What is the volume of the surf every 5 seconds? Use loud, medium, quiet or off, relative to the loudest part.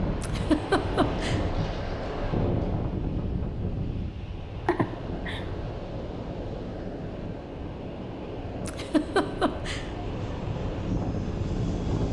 loud, medium, loud.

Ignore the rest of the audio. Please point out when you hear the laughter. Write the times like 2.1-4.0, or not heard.
0.2-1.4, 4.7-5.4, 8.7-9.8.